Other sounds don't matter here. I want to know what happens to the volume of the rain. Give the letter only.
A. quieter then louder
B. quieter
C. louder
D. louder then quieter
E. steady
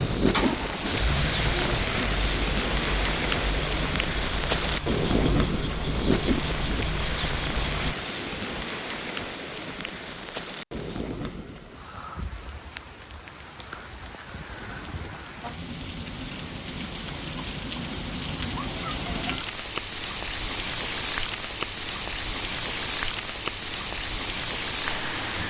A.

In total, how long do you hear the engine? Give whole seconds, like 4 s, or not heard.
8 s.